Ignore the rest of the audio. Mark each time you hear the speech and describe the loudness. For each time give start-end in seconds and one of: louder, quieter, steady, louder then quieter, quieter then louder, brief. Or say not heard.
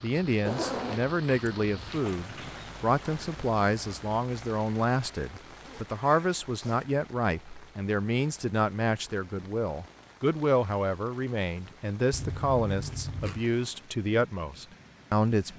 0.0-15.5 steady.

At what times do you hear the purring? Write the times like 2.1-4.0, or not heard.
not heard.